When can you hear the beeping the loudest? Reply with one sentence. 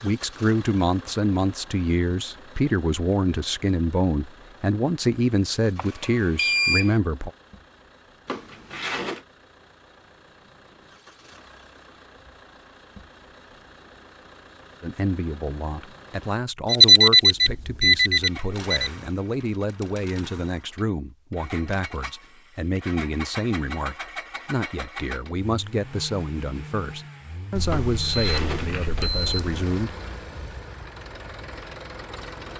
The loudest moment of the beeping is at 17 seconds.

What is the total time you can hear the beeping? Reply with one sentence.
You can hear the beeping for 6 seconds altogether.